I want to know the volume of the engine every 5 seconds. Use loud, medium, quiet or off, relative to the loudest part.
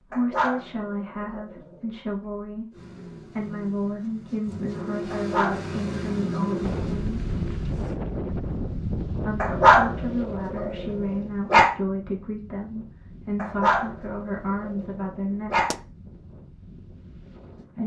medium, loud, off, off.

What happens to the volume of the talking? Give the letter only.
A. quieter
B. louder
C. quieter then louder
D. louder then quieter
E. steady
E.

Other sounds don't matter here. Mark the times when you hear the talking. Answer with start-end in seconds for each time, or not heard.
0.1-7.2, 9.2-15.7.